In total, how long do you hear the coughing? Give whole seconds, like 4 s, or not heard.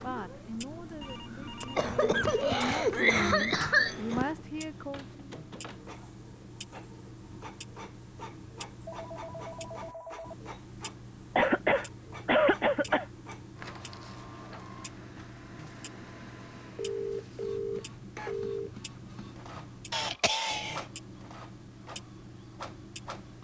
5 s.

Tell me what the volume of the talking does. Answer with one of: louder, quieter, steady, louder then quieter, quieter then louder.
louder.